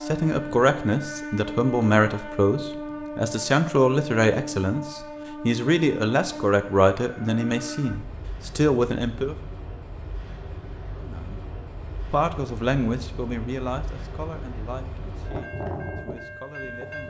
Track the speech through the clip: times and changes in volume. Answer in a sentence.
You can hear the speech from 0.0 to 9.3 s, at a steady volume; briefly from 10.9 to 11.4 s; and from 12.1 to 17.0 s, getting quieter.